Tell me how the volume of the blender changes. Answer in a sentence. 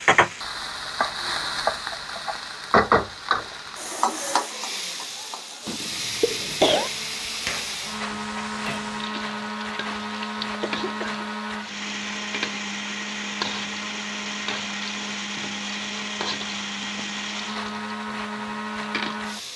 The volume of the blender goes up.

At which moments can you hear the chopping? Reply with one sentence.
You can't hear the chopping here.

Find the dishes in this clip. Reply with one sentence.
The dishes can be heard from 6.4 to 8.9 s.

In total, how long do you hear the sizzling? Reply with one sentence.
The sizzling can be heard for 19 seconds in total.